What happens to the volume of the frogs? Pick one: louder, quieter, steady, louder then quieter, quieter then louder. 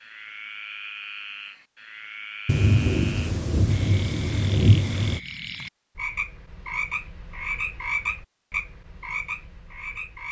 louder.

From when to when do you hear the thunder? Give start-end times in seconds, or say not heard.
2.5-5.2.